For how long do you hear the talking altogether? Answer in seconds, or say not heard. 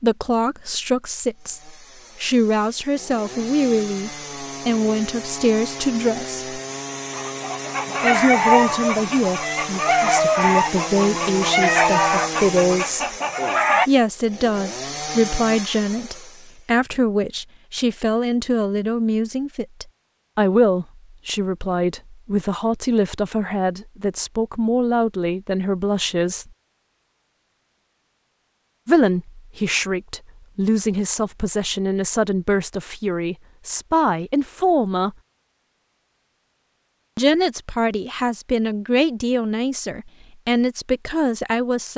35 s.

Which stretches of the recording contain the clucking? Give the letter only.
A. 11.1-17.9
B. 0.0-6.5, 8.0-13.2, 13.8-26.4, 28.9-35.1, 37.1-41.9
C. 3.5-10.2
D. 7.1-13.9
D.